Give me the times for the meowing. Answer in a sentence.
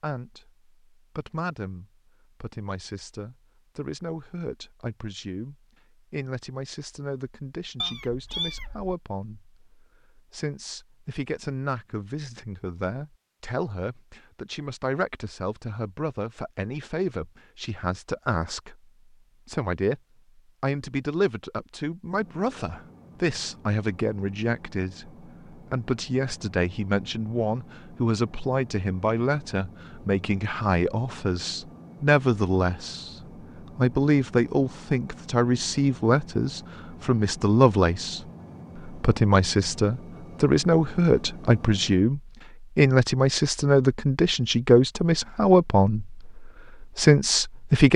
The meowing can be heard from 7.8 to 8.9 s.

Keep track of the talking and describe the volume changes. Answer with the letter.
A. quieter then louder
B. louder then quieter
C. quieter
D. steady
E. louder
E.